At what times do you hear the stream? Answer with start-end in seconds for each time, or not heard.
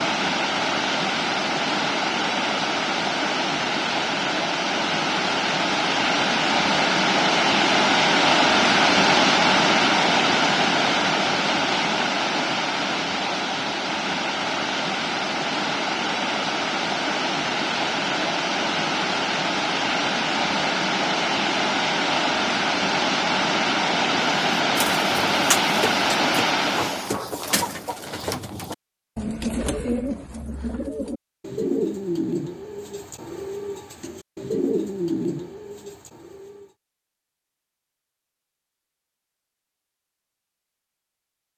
0.0-27.1.